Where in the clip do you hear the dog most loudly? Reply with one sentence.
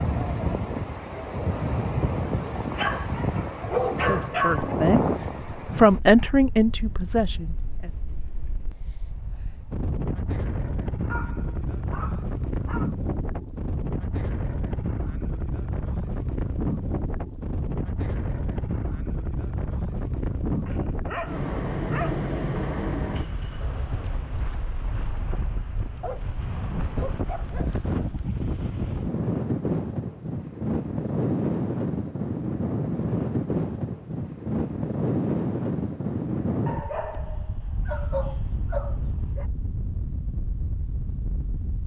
The volume of the dog peaks at 4 seconds.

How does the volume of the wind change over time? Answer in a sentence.
The volume of the wind stays about the same.